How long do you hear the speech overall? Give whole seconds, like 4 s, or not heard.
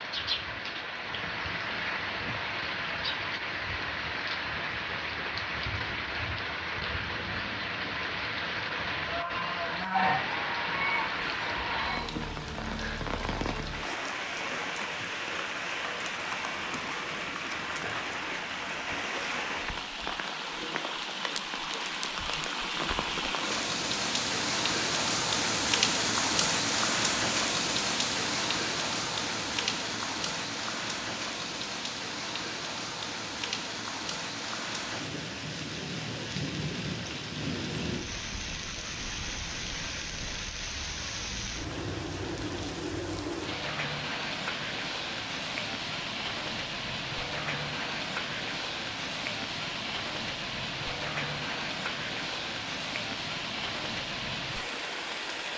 not heard.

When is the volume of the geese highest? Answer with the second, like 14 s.
10 s.